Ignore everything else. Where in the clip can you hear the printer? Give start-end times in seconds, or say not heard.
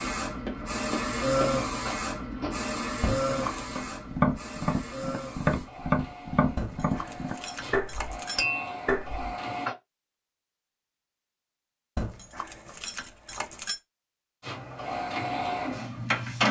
0.0-9.8, 14.4-16.4.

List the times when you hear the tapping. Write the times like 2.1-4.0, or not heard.
0.0-9.8.